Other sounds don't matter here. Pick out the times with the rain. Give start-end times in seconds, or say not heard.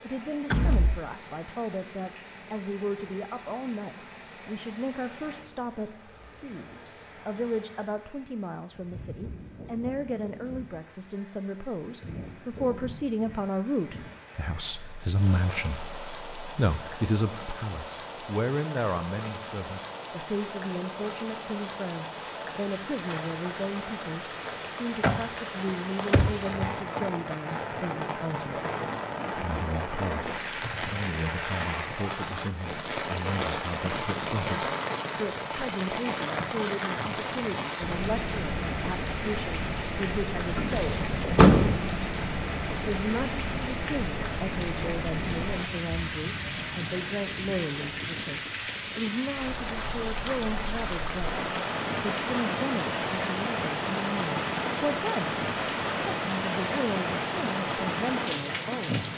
0.0-59.1.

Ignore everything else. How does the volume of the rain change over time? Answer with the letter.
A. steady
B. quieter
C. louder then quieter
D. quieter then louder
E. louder
E.